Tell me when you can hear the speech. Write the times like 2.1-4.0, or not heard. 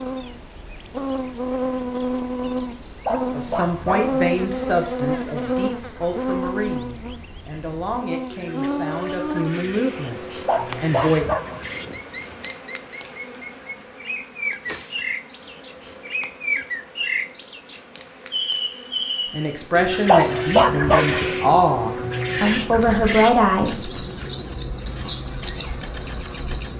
3.3-11.2, 19.3-23.9.